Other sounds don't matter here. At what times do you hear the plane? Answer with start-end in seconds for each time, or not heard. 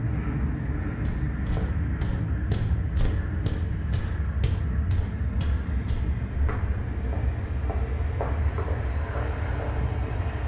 0.0-10.4.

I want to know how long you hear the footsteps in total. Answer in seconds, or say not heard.
9 s.